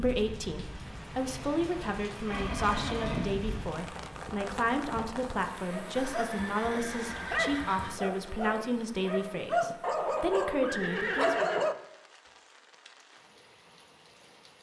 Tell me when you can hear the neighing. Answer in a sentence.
The neighing can be heard from 2.2 to 3.4 s, from 6.0 to 8.0 s and from 9.9 to 11.7 s.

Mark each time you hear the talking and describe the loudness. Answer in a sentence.
The talking can be heard from 0.0 to 11.4 s, at a steady volume.